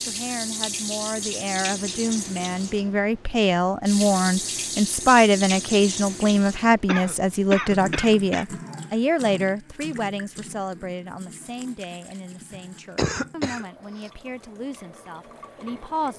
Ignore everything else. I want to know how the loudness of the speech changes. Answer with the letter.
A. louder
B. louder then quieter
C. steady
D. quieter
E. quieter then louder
B.